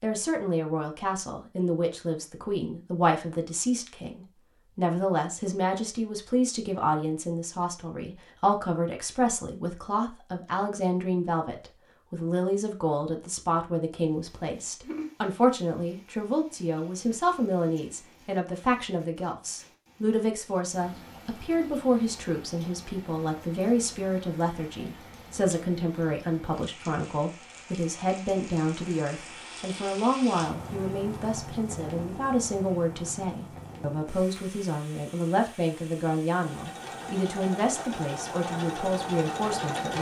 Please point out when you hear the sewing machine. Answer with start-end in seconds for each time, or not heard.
36.5-39.9.